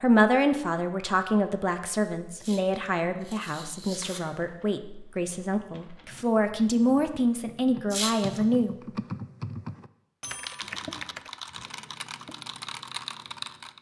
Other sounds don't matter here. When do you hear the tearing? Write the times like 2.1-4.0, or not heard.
2.4-4.2, 7.9-8.4.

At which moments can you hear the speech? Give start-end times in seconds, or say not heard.
0.0-8.8.